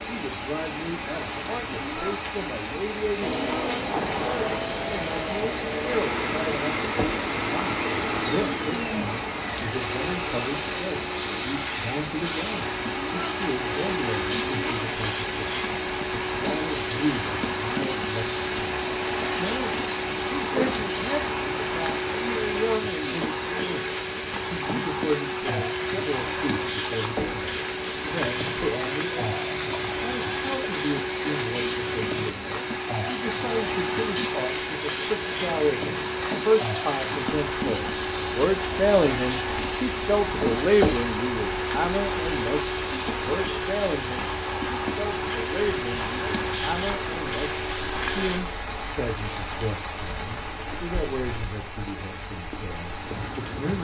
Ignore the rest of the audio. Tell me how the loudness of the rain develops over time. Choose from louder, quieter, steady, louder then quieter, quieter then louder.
steady.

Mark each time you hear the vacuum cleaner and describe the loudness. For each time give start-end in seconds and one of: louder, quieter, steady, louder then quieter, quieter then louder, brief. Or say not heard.
3.2-48.4 steady.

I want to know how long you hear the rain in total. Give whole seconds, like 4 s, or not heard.
54 s.